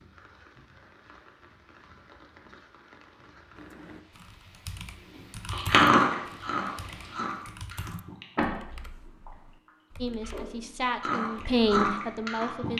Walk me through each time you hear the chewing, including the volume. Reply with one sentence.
The chewing can be heard from 5.5 to 12.7 s, getting quieter then louder.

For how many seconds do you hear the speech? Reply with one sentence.
You can hear the speech for 3 seconds altogether.